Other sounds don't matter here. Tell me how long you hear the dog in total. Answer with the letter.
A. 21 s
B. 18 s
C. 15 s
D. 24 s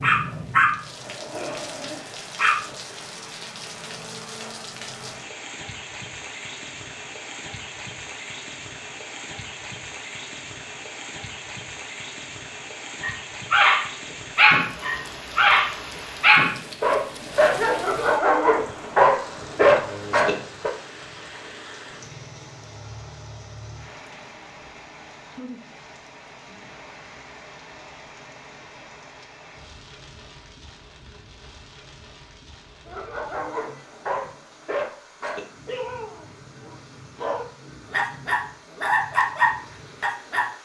B.